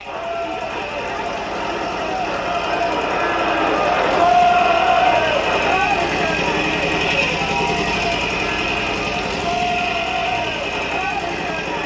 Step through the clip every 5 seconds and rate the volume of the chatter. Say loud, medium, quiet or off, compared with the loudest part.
loud, loud, medium.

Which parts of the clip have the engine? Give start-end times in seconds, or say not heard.
0.0-11.8.